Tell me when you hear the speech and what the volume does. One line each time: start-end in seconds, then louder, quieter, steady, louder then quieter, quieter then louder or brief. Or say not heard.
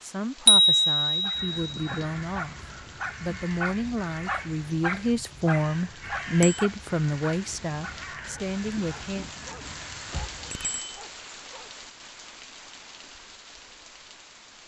0.0-2.6 brief
3.2-9.3 louder then quieter.